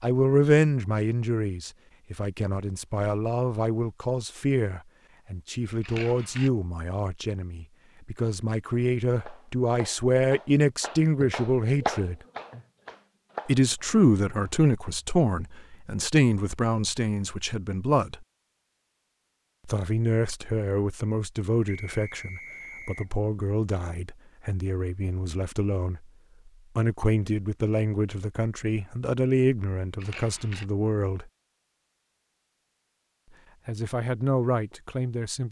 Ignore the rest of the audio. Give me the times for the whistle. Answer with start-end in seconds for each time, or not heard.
21.6-23.1.